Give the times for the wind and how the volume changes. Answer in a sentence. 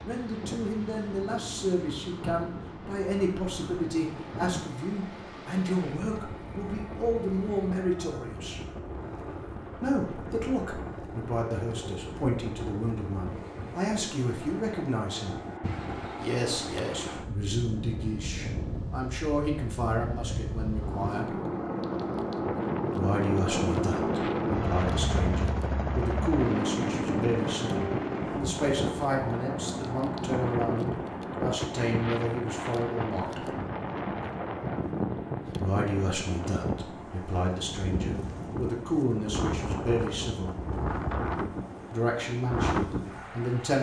The wind can be heard from 0.0 to 43.5 s, getting louder.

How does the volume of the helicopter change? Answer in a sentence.
The volume of the helicopter goes up, then down.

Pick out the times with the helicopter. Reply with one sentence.
The helicopter can be heard from 0.0 to 43.7 s.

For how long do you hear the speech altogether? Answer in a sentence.
You can hear the speech for 37 seconds altogether.